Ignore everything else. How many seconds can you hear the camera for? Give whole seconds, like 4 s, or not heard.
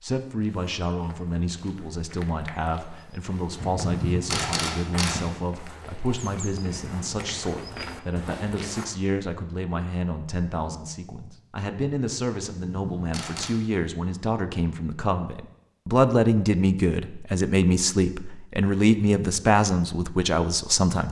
3 s.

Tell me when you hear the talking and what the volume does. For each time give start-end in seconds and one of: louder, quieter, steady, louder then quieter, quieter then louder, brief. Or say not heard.
0.0-21.0 louder.